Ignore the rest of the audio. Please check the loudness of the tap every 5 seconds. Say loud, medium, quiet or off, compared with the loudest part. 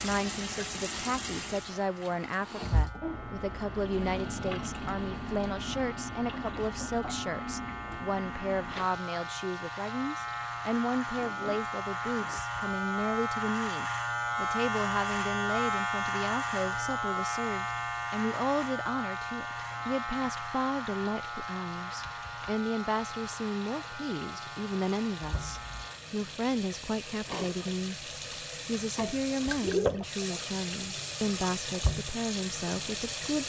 loud, medium, quiet, quiet, quiet, loud, loud.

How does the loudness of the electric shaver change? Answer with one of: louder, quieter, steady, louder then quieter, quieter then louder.
louder then quieter.